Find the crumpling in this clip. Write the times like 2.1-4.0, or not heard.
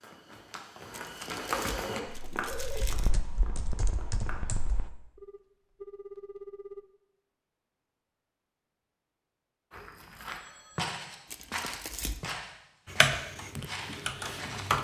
0.9-3.1, 11.3-12.3.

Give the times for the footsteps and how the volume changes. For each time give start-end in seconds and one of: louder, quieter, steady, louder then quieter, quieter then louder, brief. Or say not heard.
0.0-4.5 louder then quieter
9.7-14.7 quieter.